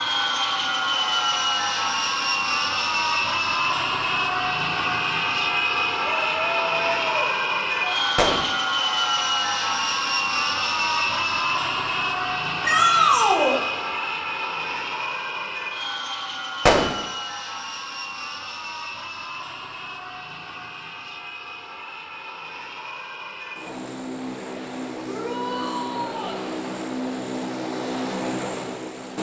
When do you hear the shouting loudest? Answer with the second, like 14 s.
13 s.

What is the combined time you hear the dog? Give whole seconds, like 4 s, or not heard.
not heard.